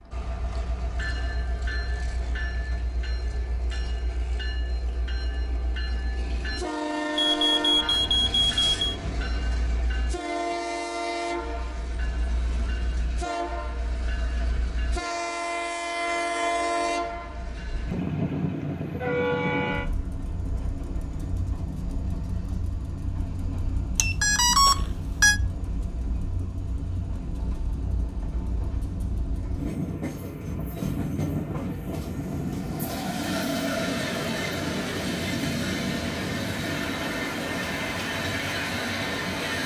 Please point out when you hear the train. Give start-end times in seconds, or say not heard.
0.0-39.6.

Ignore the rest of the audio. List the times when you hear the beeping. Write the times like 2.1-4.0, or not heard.
7.2-9.0, 23.9-25.4.